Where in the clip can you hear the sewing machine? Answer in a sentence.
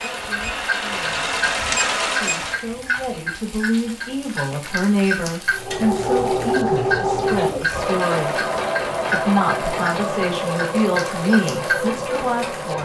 The sewing machine can be heard from 0.0 to 2.6 s and from 5.5 to 12.8 s.